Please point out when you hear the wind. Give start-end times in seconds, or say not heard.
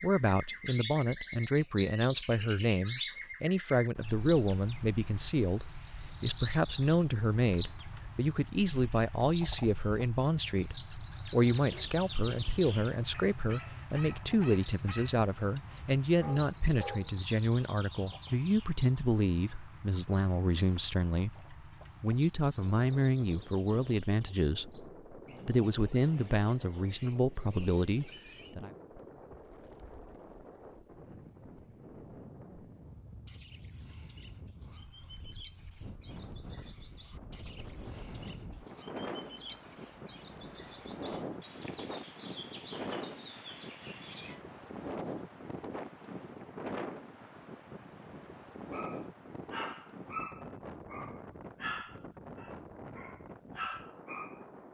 22.8-54.6.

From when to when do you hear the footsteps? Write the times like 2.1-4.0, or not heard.
not heard.